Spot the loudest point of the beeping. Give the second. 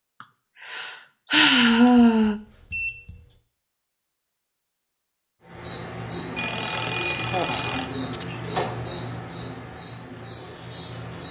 7 s.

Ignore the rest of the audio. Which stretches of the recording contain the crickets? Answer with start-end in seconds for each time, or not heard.
5.5-11.2.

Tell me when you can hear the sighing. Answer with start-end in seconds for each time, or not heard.
0.2-2.4, 7.2-8.6.